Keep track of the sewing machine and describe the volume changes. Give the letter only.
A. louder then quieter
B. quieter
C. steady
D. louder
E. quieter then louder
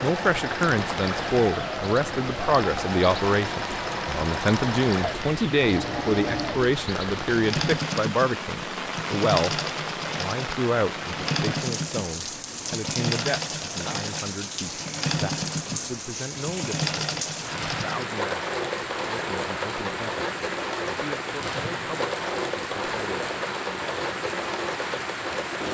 C.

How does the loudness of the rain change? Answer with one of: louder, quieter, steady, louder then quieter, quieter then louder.
steady.